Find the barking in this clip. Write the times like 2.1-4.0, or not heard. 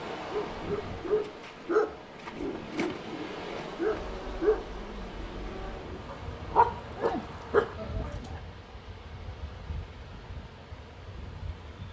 0.2-8.4.